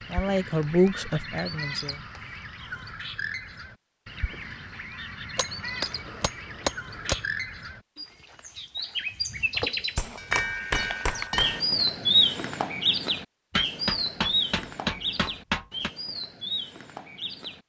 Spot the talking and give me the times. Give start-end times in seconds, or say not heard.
0.1-2.0.